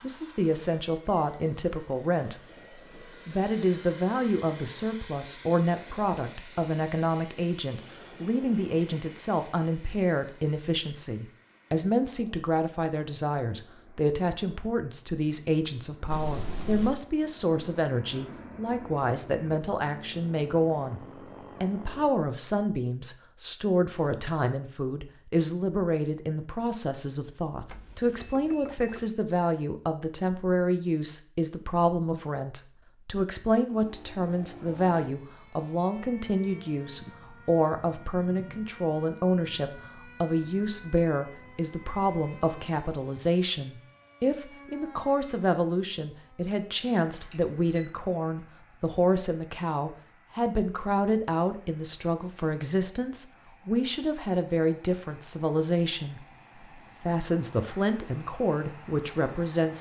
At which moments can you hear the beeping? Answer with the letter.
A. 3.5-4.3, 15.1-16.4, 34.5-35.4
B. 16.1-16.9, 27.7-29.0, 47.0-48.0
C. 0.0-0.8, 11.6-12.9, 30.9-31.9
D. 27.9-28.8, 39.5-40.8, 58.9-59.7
B.